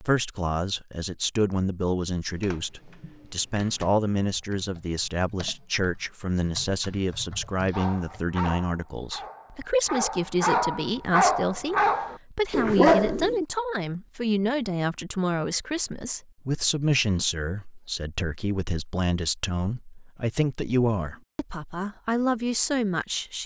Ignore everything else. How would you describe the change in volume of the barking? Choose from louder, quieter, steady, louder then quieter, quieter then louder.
louder.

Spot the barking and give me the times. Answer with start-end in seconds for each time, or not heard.
7.7-13.4.